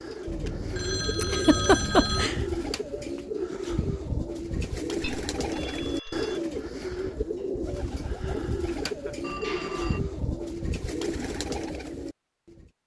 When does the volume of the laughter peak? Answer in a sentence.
The loudest moment of the laughter is at 2 seconds.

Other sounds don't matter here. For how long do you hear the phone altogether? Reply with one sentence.
The phone can be heard for 4 seconds in total.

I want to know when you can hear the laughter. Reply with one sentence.
The laughter can be heard from 1.2 to 2.4 s and from 8.7 to 9.3 s.